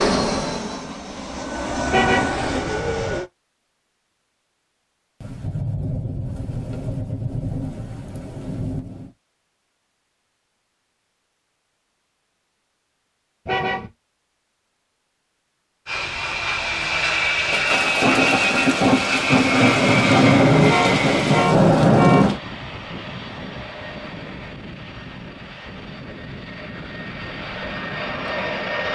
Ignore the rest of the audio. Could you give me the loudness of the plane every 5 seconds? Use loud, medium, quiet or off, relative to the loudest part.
loud, off, off, loud, medium, medium.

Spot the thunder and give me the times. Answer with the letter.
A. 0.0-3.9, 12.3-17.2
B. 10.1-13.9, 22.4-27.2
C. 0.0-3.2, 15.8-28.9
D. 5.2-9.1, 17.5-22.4
D.